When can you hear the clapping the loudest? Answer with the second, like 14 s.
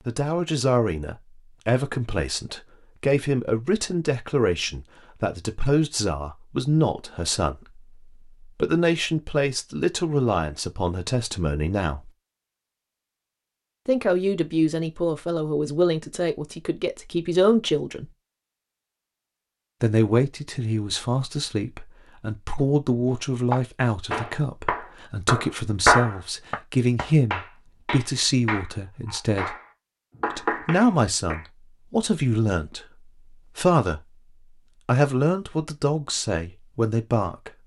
26 s.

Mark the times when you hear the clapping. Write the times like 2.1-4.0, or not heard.
23.1-31.4.